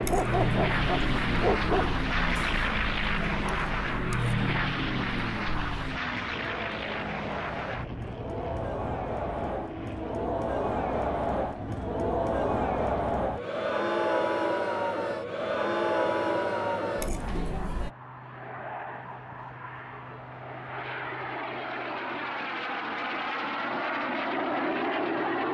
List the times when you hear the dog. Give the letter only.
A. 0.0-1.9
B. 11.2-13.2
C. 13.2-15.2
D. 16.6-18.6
A.